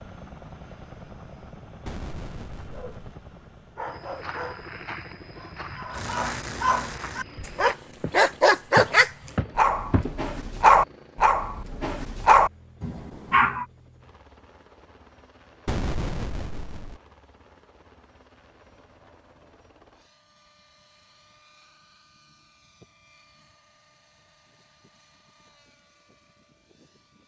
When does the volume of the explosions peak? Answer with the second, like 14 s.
16 s.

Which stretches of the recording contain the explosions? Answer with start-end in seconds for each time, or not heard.
1.9-3.1, 15.7-17.0.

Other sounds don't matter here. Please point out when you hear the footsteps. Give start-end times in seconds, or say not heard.
3.9-10.3.